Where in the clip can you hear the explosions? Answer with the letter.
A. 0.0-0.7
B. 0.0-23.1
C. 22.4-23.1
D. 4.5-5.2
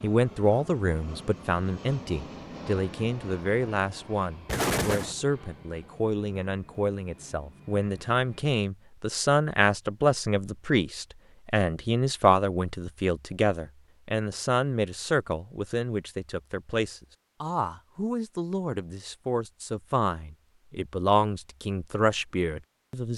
D.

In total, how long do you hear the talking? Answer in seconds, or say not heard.
23 s.